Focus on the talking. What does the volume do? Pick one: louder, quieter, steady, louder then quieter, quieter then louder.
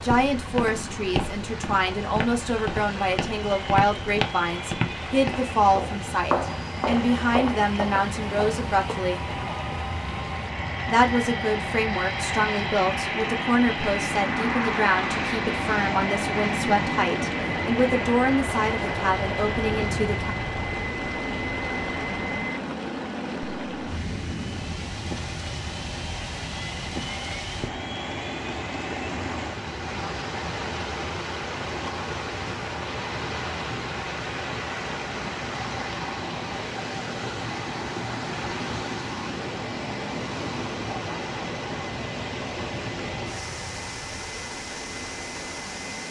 steady.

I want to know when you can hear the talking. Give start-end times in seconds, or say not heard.
0.0-9.3, 10.8-20.4.